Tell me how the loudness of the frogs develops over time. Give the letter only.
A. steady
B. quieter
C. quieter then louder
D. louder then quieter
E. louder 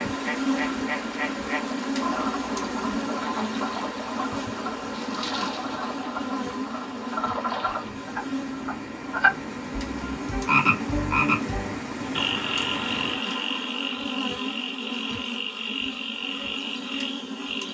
D.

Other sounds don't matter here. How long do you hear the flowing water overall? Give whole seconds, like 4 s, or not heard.
13 s.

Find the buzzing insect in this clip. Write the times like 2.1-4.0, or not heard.
0.0-17.6.